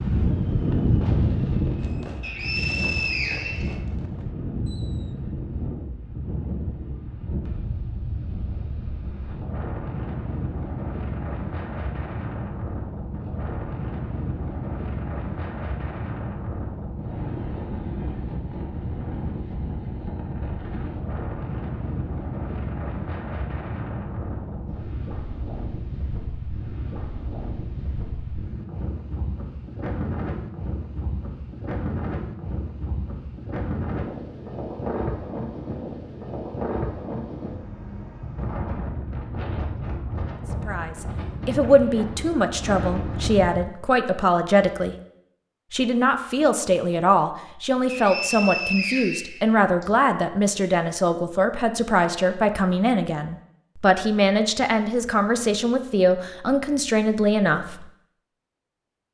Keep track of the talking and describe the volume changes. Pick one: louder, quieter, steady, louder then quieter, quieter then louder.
steady.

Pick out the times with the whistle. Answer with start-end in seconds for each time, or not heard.
2.2-3.8, 47.9-49.9.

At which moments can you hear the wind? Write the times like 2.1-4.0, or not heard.
0.0-43.7.